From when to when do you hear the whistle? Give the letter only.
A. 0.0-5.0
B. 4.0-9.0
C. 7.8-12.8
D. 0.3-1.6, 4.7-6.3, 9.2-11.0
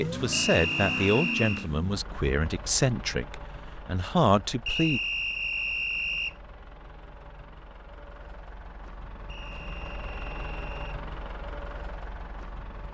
D.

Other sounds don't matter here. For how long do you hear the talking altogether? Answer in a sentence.
You can hear the talking for 5 seconds altogether.